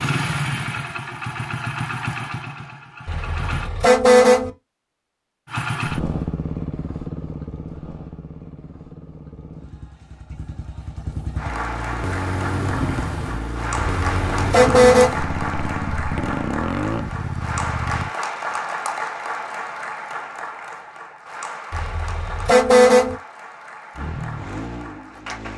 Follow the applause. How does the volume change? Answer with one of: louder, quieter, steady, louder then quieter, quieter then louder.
quieter.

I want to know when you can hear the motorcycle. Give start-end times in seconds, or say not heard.
0.0-3.7, 5.5-18.1, 23.9-25.5.